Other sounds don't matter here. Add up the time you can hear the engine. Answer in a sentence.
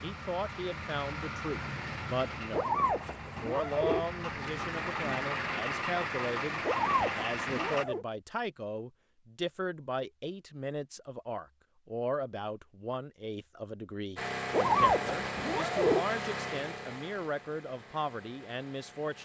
You can hear the engine for 13 seconds altogether.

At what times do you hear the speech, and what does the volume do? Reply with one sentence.
The speech can be heard from 0.0 to 19.2 s, at a steady volume.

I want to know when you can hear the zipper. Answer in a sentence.
The zipper can be heard from 2.5 to 4.0 s, from 6.6 to 8.1 s and from 14.5 to 16.1 s.